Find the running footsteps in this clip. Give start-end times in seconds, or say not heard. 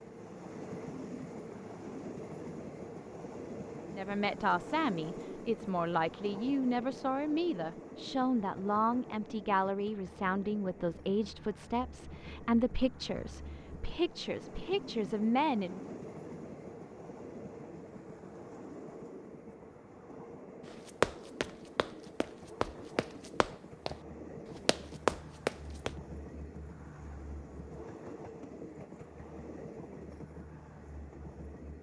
20.7-23.9, 24.6-25.9.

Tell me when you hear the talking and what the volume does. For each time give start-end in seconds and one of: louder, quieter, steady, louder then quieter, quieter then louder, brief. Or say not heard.
3.9-15.9 steady.